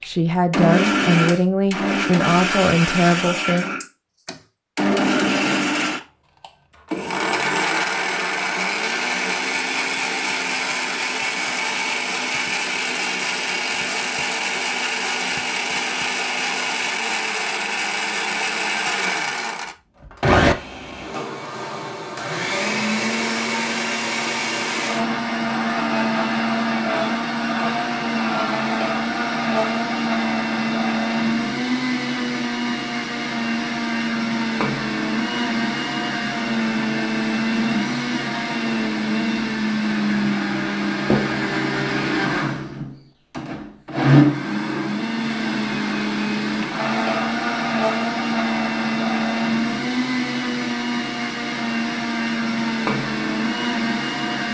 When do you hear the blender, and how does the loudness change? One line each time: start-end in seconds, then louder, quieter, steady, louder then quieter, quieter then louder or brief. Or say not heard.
0.0-54.5 steady.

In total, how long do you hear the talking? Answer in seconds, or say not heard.
4 s.